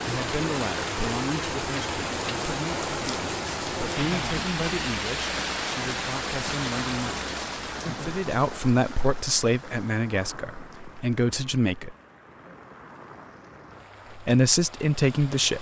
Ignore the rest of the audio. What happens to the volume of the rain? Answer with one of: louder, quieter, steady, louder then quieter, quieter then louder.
quieter.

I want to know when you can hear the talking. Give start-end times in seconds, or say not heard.
0.0-11.9, 14.2-15.5.